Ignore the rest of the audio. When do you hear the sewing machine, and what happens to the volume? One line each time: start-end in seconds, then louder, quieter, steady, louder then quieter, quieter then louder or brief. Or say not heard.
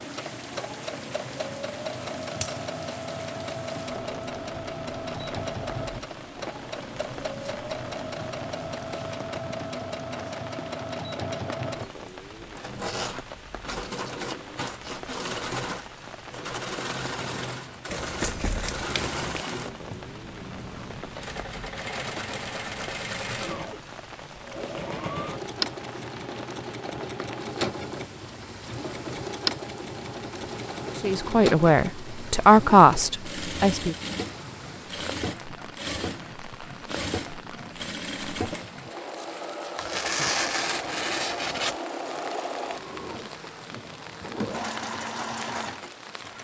0.0-46.4 steady.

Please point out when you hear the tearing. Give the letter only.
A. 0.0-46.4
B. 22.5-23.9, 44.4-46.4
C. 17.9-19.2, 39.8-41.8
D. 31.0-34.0
C.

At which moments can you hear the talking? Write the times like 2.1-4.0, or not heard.
31.0-34.0.